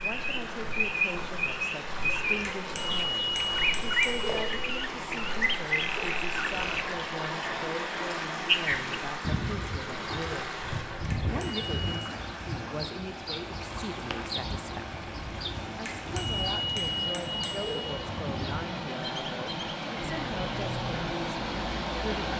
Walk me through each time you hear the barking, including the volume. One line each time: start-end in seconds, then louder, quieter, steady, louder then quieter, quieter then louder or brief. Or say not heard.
not heard.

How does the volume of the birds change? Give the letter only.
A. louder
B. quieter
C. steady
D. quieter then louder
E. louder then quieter
B.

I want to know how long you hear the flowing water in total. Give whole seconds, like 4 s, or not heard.
22 s.